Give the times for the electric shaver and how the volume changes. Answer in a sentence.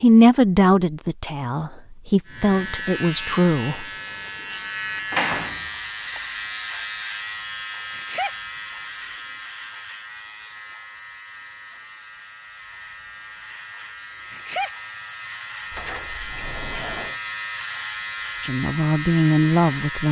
The electric shaver can be heard from 2.2 to 20.0 s, getting quieter then louder.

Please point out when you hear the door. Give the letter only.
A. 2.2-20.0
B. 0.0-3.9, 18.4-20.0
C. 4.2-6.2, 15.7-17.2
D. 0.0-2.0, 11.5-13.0
C.